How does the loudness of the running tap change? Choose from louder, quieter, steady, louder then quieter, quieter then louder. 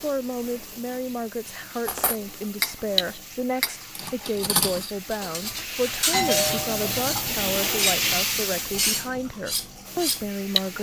louder then quieter.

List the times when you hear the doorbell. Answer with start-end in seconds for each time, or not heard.
6.1-7.6.